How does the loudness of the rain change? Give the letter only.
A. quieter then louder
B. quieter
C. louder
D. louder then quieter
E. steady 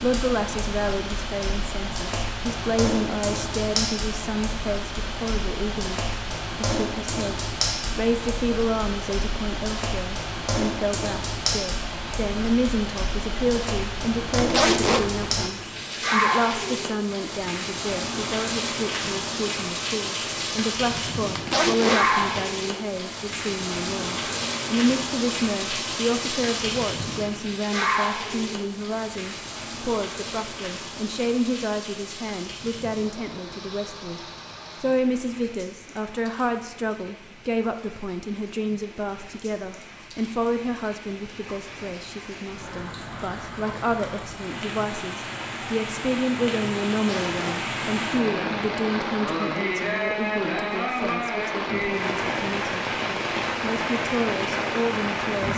A.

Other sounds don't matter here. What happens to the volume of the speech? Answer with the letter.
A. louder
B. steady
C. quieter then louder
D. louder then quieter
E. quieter
B.